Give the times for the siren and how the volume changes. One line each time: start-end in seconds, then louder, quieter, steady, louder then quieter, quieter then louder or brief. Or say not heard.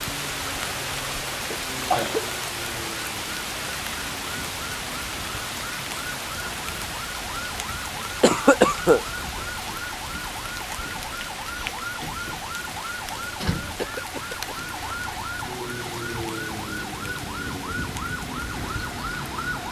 0.0-19.6 louder.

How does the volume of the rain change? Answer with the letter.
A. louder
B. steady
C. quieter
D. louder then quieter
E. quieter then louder
C.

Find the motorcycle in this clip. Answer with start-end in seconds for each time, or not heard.
not heard.